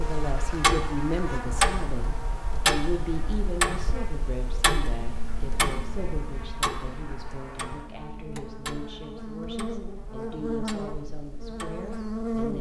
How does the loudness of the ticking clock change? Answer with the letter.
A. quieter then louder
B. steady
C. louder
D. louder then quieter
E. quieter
E.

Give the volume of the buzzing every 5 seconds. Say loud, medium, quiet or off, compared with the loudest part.
medium, medium, loud.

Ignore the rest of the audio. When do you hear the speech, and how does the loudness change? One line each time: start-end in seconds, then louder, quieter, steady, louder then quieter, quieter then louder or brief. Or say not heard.
0.0-12.5 quieter.